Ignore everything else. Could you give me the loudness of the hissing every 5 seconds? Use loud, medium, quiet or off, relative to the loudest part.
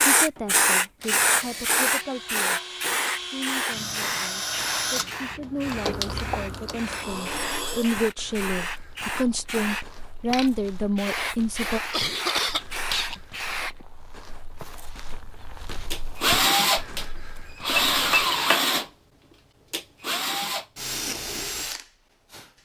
loud, medium, medium, off, off.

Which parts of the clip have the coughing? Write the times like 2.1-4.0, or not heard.
11.7-13.2.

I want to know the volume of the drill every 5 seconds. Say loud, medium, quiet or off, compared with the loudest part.
medium, medium, off, loud, medium.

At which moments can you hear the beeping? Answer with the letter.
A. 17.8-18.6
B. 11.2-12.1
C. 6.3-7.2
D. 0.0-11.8
A.